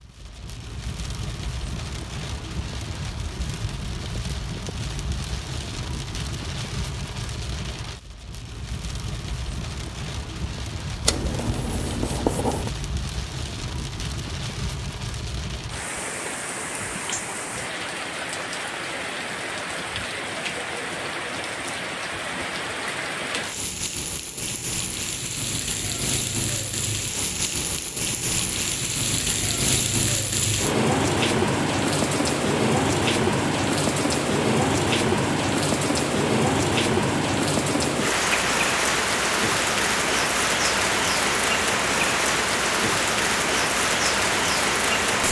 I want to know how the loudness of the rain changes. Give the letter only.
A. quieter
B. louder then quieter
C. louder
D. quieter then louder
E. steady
C.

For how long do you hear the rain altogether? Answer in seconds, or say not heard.
45 s.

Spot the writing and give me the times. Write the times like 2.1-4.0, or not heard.
11.1-12.7.